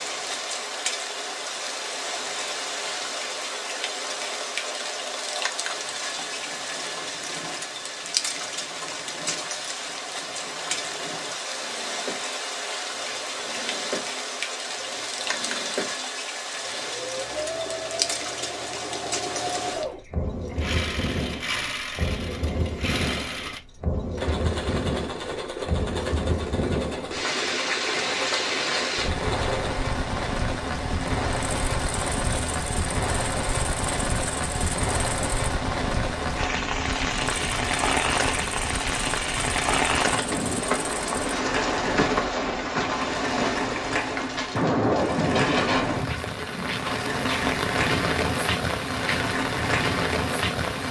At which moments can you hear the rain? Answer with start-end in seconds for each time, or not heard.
0.0-50.8.